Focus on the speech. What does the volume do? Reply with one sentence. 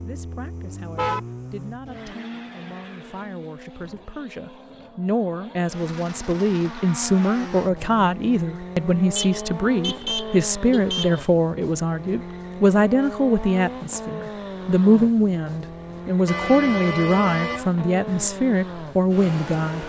The loudness of the speech goes up.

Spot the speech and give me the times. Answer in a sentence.
You can hear the speech from 0.0 to 19.8 s.